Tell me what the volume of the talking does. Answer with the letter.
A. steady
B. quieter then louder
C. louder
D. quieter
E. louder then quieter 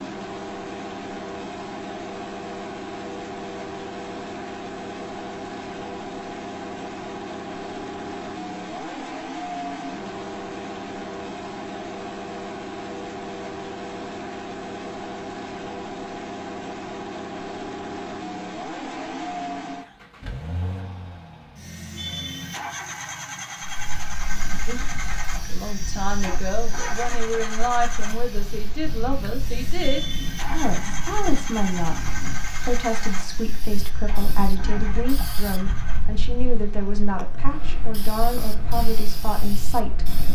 A.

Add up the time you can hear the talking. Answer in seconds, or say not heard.
16 s.